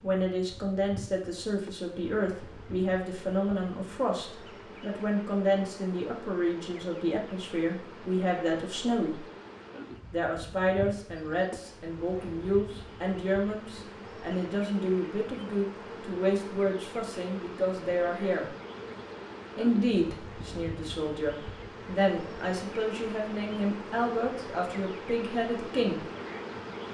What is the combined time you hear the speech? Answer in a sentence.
You can hear the speech for 24 seconds altogether.